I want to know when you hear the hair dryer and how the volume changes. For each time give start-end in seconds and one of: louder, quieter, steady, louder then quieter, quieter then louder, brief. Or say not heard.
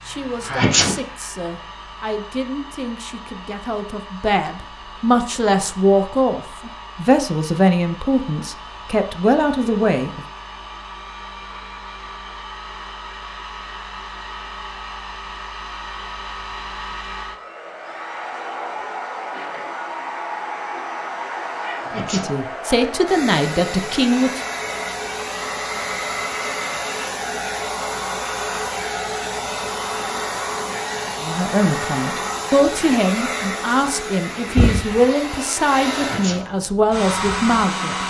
0.0-38.0 louder.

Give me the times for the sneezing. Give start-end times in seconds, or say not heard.
0.5-0.9, 21.8-22.3, 36.0-36.5.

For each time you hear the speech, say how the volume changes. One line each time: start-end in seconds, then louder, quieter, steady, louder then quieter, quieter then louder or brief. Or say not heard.
0.0-10.2 louder
21.9-24.4 brief
31.2-38.0 steady.